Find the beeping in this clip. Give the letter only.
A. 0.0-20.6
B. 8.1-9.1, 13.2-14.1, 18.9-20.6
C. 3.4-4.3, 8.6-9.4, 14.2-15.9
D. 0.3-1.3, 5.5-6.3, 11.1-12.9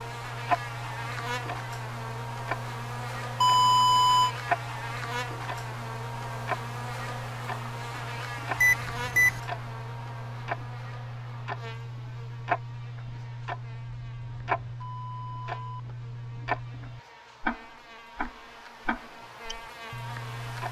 C.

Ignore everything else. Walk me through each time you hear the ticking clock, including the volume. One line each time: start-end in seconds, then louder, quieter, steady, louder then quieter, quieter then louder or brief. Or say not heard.
0.0-20.6 steady.